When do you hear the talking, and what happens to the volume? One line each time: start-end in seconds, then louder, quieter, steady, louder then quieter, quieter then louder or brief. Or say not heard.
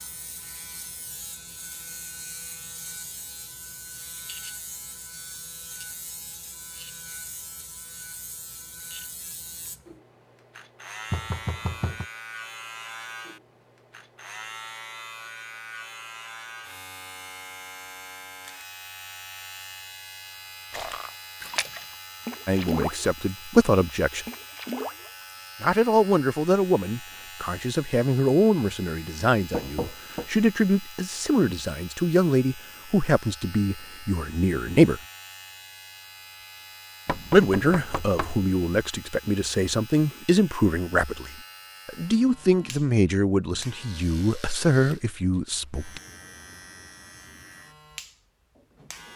22.4-24.2 brief
25.6-35.0 steady
37.3-46.0 steady.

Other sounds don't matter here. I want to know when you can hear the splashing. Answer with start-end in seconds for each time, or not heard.
20.7-23.2, 24.2-25.3.